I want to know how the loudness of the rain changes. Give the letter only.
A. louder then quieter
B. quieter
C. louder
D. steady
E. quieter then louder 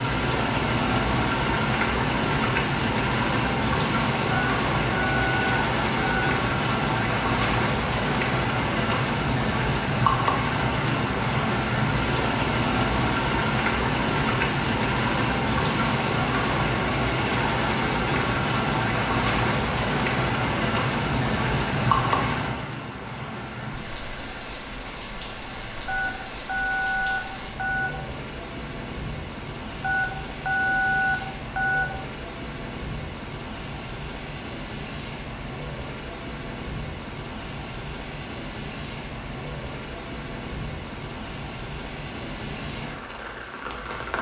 B.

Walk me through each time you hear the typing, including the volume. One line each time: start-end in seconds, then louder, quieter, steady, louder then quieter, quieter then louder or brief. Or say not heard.
not heard.